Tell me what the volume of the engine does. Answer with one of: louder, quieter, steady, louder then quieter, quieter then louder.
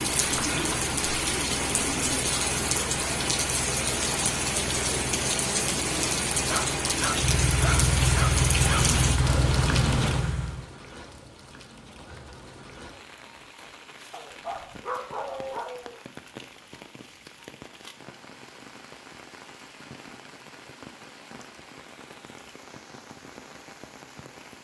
louder.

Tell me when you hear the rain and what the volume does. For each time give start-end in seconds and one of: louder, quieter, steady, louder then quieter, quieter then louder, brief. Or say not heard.
0.0-24.6 quieter.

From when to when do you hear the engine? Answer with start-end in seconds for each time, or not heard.
0.0-10.7.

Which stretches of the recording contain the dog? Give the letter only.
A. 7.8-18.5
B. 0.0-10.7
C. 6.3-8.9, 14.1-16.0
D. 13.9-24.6
C.